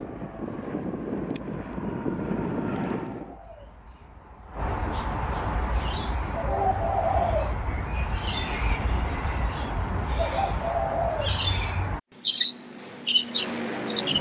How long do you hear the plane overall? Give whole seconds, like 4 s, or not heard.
5 s.